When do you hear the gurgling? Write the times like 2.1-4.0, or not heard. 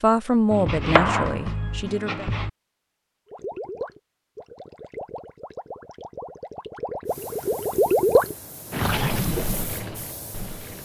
3.2-10.7.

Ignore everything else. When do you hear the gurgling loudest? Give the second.
8 s.